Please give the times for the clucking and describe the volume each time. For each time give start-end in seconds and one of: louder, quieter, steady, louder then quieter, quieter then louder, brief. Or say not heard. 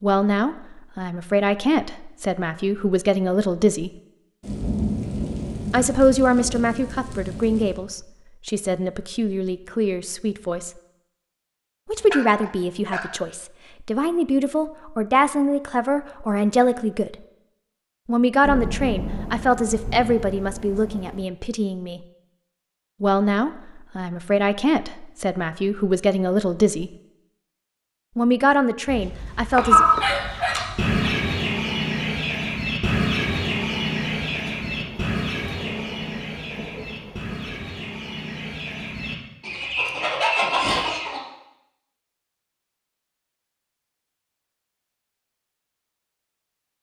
29.5-41.2 quieter then louder.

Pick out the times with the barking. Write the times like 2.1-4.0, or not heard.
12.0-13.2, 28.9-30.9.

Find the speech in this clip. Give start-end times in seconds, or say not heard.
0.0-3.9, 5.7-10.7, 11.8-17.1, 18.1-22.0, 23.0-26.9, 28.1-29.9.